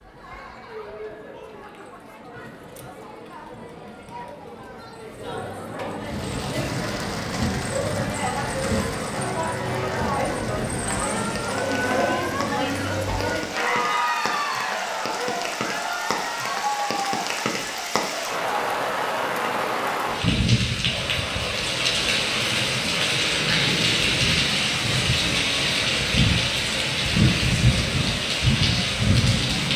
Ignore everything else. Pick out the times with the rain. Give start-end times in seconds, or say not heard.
6.0-29.7.